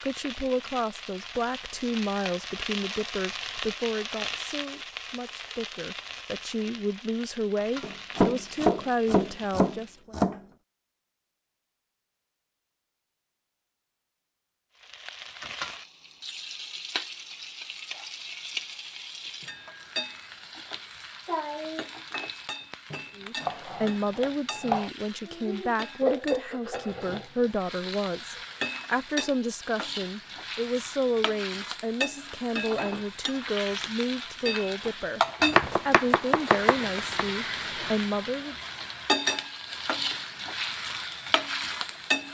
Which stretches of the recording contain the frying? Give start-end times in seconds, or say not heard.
0.0-10.0, 14.8-42.2.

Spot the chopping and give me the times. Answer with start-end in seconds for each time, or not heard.
7.8-10.4, 22.9-24.9, 35.5-37.2.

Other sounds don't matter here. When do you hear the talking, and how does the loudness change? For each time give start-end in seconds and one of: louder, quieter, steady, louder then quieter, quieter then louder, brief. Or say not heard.
0.0-10.2 quieter then louder
23.1-38.5 steady.